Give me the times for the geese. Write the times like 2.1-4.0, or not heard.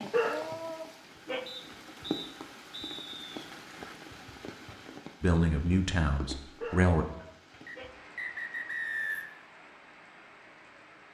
not heard.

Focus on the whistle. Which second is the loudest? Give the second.
9 s.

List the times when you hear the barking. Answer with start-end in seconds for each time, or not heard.
0.1-1.4, 6.6-7.9.